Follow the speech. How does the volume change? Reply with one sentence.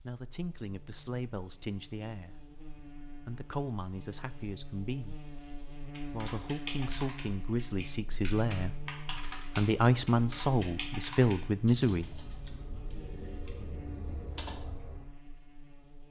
The volume of the speech goes up.